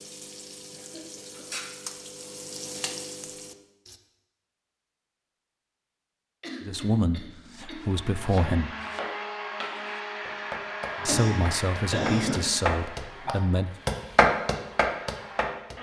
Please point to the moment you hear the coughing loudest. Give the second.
12 s.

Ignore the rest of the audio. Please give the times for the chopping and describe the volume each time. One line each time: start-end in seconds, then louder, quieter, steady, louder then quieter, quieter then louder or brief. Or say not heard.
7.8-15.7 louder.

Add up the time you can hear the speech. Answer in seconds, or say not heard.
5 s.